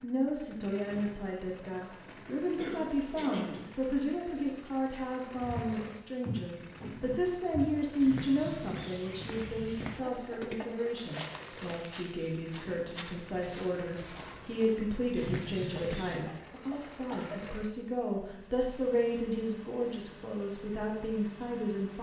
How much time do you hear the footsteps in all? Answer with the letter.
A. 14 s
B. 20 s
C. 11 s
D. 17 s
C.